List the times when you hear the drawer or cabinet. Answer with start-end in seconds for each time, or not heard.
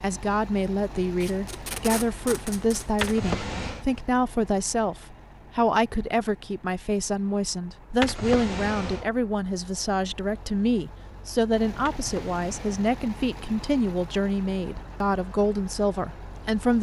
2.9-3.9, 7.9-9.1, 11.7-12.8.